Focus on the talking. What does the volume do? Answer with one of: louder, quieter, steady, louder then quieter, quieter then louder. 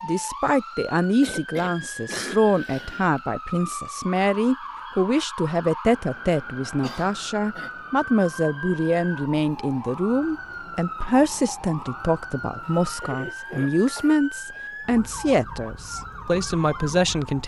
steady.